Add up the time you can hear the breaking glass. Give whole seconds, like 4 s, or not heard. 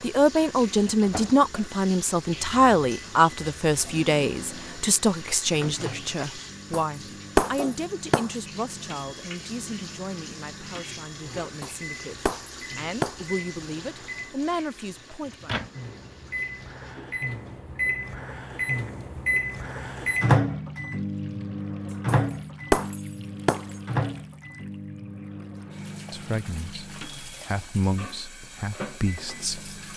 5 s.